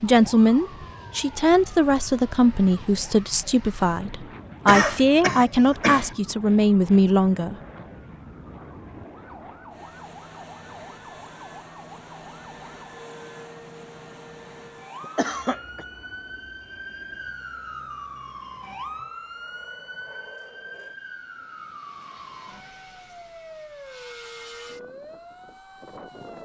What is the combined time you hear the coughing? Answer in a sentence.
You can hear the coughing for 2 seconds altogether.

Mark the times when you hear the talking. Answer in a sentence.
You can hear the talking from 0.0 to 7.5 s.